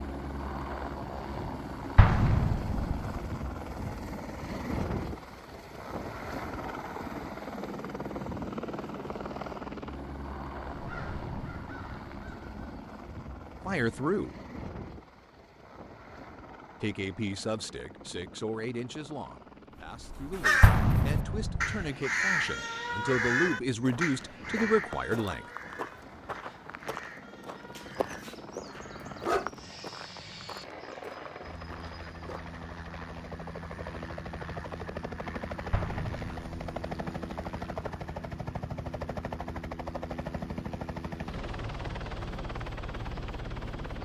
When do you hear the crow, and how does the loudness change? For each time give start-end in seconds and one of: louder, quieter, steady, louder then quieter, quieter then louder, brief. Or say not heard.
10.7-12.7 brief
19.8-29.4 quieter.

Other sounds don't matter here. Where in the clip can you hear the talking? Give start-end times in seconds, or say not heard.
13.7-14.3, 16.8-25.4.